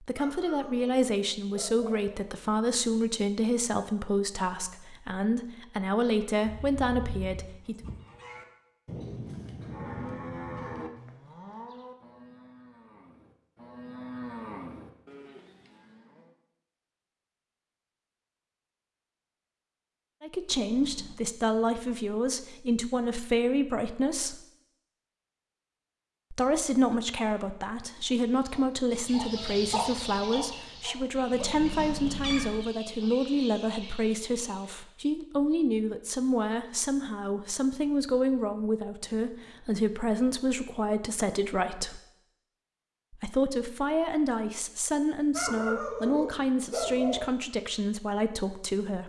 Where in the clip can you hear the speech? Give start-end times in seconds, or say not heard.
0.0-7.8, 20.2-24.4, 26.3-42.0, 43.1-49.0.